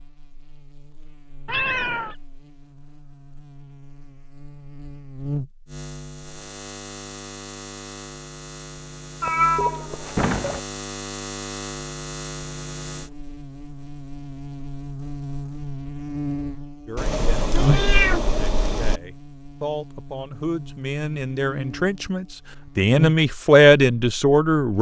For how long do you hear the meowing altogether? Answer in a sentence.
You can hear the meowing for 4 seconds altogether.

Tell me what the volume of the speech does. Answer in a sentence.
The volume of the speech goes up.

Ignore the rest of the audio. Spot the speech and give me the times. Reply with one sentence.
You can hear the speech from 16.9 to 24.7 s.